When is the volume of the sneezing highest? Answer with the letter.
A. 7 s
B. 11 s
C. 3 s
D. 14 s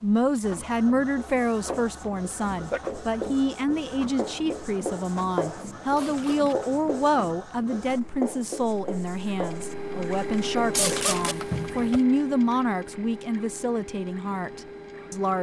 B.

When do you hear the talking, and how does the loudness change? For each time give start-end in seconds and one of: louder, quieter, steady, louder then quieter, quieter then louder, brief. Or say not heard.
0.0-15.3 steady.